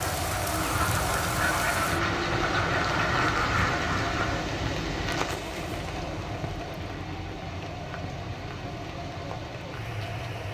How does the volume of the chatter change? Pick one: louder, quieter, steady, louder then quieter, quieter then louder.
quieter.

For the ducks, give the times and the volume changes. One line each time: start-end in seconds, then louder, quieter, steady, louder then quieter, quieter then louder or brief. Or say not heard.
0.1-4.5 steady.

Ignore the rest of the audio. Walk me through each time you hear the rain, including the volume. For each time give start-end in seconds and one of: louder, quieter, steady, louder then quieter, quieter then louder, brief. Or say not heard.
0.0-10.4 quieter.